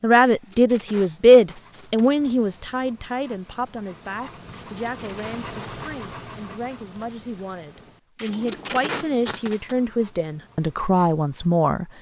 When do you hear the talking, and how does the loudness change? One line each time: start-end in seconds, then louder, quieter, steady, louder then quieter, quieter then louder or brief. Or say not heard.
0.0-11.8 quieter then louder.